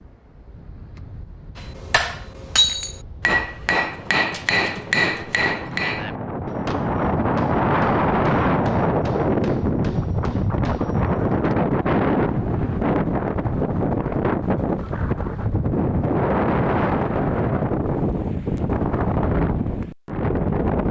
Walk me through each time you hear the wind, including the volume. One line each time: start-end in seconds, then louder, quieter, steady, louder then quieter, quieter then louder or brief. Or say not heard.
0.0-20.8 louder.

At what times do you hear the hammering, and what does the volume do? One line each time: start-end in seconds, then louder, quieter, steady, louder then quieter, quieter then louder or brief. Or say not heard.
1.6-11.6 quieter.